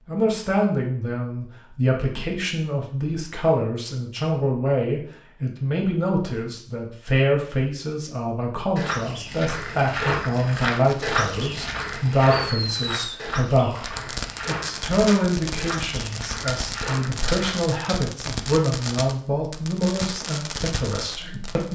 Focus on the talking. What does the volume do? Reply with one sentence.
The volume of the talking stays about the same.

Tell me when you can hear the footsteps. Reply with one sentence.
The footsteps can be heard from 8.8 to 17.6 s.